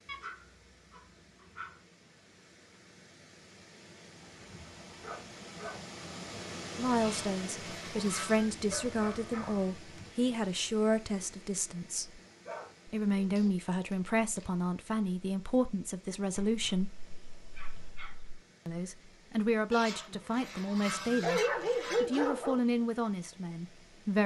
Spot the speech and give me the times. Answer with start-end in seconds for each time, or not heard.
6.8-12.2, 12.8-16.9, 18.6-21.4, 22.0-24.2.